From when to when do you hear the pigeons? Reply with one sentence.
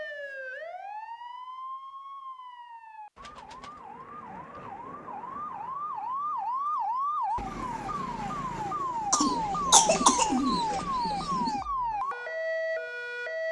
The pigeons can be heard from 3.1 to 4.7 s and from 9.2 to 11.7 s.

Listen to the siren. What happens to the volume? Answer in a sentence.
The loudness of the siren goes up.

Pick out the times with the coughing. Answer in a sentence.
The coughing can be heard from 9.1 to 10.3 s.